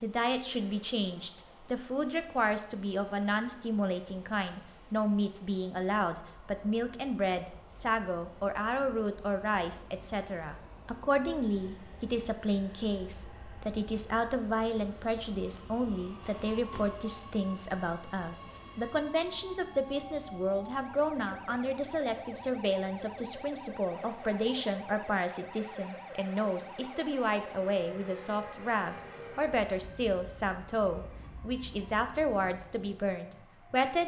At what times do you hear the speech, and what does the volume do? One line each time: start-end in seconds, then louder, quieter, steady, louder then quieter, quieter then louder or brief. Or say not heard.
0.0-34.0 steady.